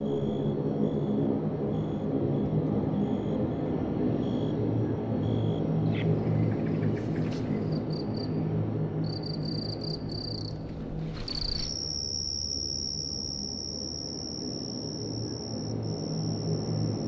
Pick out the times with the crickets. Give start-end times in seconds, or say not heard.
0.0-17.0.